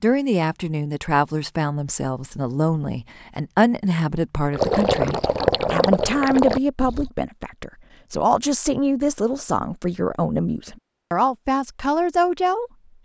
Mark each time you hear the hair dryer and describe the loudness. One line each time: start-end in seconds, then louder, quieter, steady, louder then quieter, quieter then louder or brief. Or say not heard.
not heard.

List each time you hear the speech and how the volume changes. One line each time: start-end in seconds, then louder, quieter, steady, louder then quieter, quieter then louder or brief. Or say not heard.
0.0-13.0 steady.